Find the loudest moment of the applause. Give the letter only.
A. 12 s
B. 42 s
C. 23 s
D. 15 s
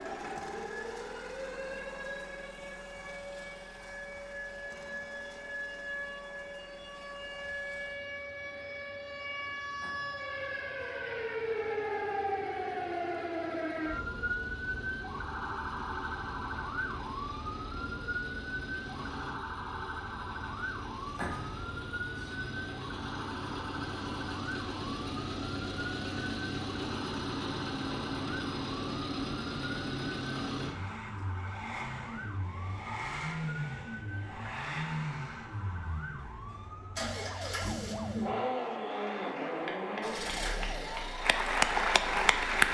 B.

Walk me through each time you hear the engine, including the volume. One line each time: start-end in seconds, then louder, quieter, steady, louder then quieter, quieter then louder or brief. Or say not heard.
0.0-42.6 louder.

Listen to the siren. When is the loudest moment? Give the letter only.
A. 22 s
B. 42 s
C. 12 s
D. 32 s
C.